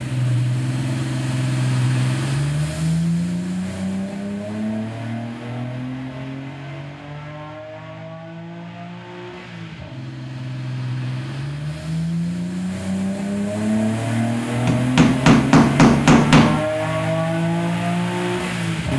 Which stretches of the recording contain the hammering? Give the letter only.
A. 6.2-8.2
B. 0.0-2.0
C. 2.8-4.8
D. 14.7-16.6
D.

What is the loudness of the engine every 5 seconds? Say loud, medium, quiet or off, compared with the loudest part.
loud, medium, loud, loud.